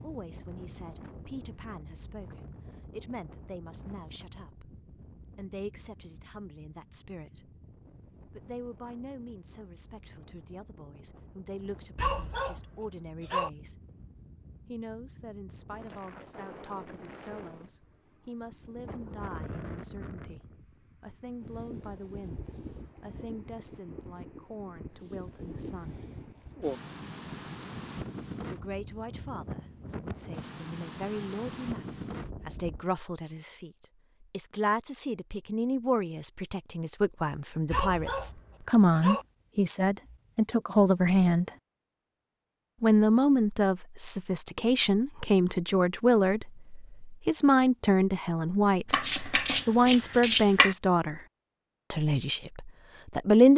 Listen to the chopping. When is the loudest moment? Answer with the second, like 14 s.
50 s.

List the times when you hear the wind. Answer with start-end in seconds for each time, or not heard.
0.0-32.9.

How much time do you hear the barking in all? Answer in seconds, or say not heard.
3 s.